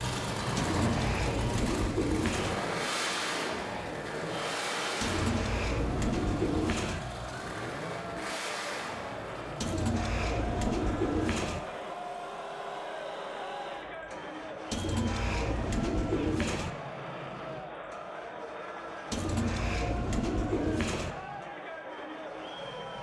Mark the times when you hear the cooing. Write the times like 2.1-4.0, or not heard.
0.6-2.6, 5.0-7.0, 9.6-11.6, 14.7-16.7, 19.1-21.1.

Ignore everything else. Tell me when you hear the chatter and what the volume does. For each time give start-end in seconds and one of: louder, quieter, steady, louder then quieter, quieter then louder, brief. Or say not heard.
0.1-22.9 steady.